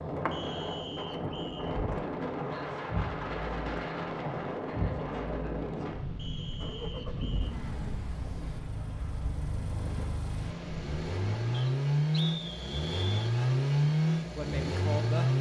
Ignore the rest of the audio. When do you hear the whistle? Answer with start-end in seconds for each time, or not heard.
0.3-1.8, 6.2-7.5, 11.5-13.3.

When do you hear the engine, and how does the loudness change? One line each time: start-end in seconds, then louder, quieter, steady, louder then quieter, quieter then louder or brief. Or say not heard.
0.0-15.3 louder.